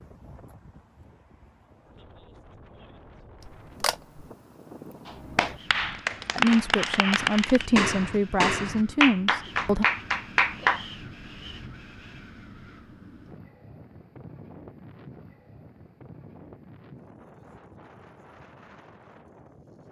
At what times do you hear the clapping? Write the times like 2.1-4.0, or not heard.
5.0-10.8.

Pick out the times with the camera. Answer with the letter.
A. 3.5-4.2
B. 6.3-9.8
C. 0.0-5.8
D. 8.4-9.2
A.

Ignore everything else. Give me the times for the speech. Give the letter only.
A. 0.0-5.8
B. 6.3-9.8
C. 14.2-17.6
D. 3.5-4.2
B.